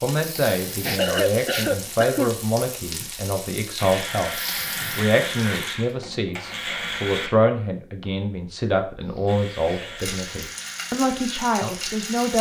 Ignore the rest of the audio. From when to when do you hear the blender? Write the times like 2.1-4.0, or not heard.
3.8-7.3, 9.2-12.3.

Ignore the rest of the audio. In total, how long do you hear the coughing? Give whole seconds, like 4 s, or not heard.
4 s.